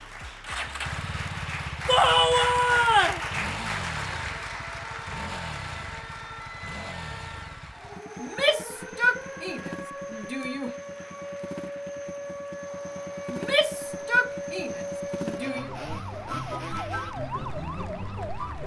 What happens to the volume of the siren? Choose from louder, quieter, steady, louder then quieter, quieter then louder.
louder.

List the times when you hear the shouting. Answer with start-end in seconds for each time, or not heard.
1.9-3.2, 8.2-10.8, 13.3-15.7.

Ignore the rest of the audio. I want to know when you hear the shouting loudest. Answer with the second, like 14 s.
2 s.